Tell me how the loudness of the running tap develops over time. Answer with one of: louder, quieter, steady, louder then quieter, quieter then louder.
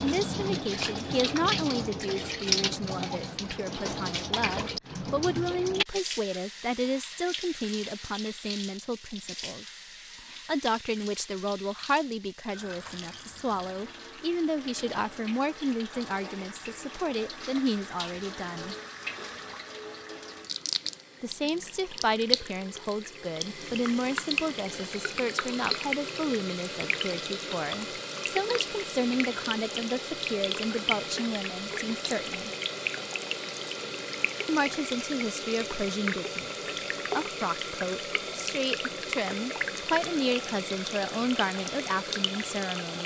quieter then louder.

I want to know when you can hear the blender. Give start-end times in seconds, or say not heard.
not heard.